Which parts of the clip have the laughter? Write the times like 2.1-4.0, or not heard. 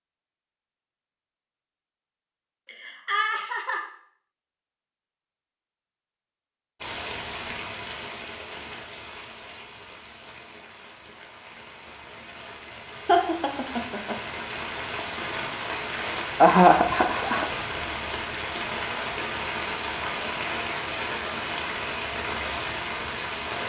2.6-3.8, 13.1-14.2, 16.4-17.5.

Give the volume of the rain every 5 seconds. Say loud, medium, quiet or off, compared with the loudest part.
off, medium, medium, loud, loud.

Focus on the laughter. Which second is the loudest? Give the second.
17 s.